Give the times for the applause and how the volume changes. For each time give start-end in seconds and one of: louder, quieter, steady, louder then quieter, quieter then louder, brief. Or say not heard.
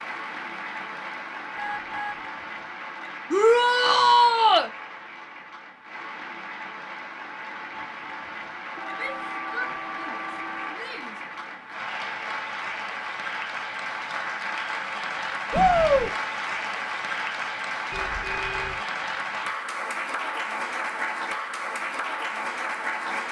0.0-23.2 louder.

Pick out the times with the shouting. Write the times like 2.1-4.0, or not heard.
3.3-4.7, 8.9-11.2, 15.5-16.1.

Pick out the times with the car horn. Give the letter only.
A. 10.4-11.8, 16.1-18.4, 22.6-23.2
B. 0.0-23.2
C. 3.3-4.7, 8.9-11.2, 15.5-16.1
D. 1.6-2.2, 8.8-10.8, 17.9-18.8
D.